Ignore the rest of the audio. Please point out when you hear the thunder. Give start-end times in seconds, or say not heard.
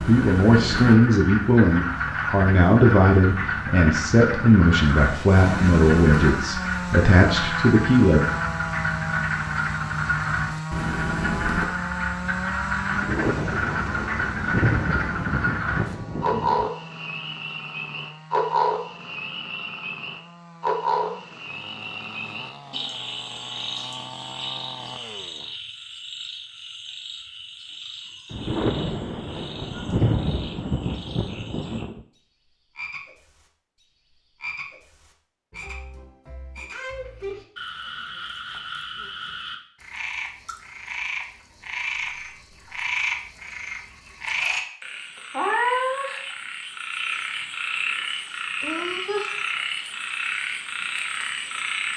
12.9-16.7, 28.3-32.0.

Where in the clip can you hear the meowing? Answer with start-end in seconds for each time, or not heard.
not heard.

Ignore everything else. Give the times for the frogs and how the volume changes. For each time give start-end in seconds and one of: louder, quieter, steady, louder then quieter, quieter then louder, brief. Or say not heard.
0.0-51.9 quieter then louder.